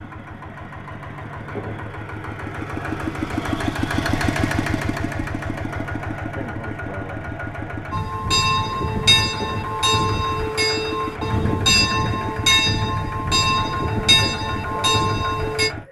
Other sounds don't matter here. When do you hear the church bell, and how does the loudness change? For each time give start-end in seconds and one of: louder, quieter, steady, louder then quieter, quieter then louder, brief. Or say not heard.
7.9-15.7 steady.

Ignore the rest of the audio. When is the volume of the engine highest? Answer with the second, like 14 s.
4 s.